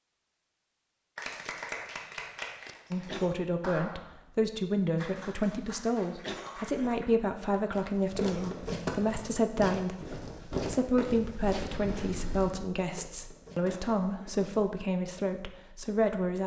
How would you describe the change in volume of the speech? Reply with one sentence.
The volume of the speech stays about the same.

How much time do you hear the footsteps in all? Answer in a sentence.
You can hear the footsteps for 7 seconds altogether.